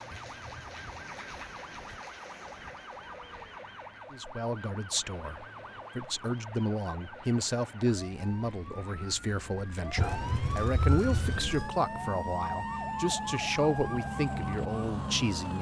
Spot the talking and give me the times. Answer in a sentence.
The talking can be heard from 4.1 to 15.5 s.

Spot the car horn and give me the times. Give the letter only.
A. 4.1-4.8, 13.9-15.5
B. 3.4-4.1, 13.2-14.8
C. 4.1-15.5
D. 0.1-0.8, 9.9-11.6
D.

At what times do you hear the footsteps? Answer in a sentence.
You can't hear the footsteps here.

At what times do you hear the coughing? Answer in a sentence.
The coughing can't be heard in this clip.